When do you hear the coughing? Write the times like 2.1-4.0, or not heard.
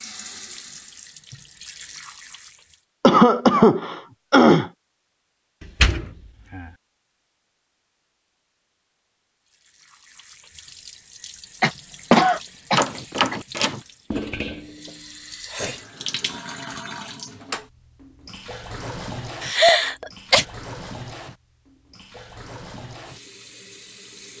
3.0-4.7, 11.6-13.3, 19.4-20.4.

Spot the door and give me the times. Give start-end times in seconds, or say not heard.
5.6-6.7, 12.8-13.8.